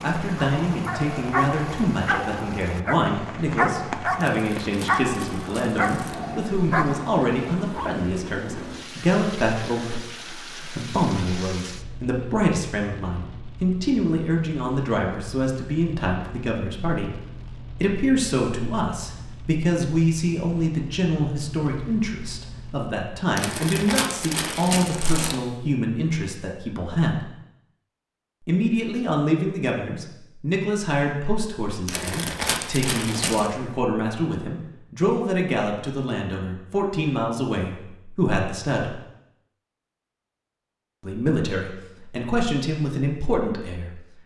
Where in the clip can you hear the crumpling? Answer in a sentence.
The crumpling can be heard from 4.2 to 6.2 s, from 23.4 to 25.4 s and from 31.9 to 33.5 s.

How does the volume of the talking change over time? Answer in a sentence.
The loudness of the talking stays about the same.